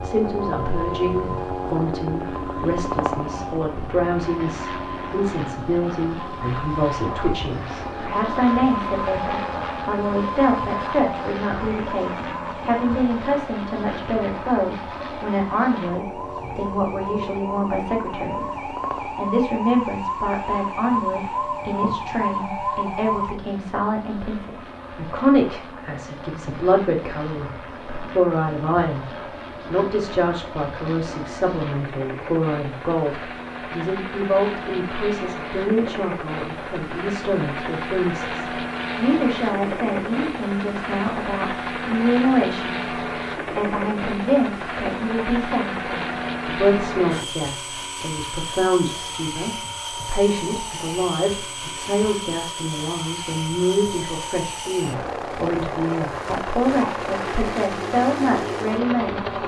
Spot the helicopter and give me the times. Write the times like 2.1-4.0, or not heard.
0.0-59.4.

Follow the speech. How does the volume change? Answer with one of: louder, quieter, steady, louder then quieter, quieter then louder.
steady.